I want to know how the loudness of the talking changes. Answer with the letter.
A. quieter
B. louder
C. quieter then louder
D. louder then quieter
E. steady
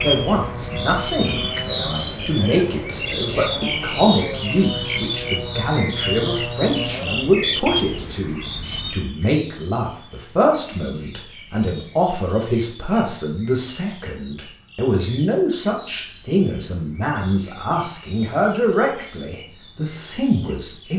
E.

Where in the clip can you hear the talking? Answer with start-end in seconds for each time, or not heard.
0.0-20.9.